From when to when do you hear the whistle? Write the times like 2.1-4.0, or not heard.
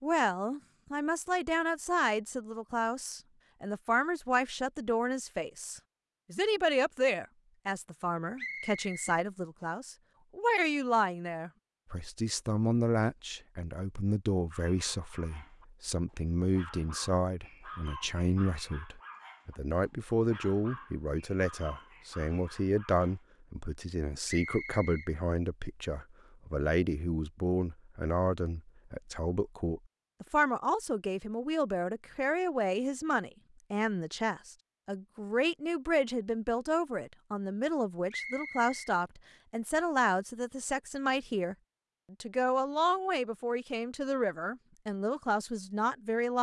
8.3-9.7, 24.2-25.1, 38.1-38.8.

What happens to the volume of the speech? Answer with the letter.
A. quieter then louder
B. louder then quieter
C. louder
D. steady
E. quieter
D.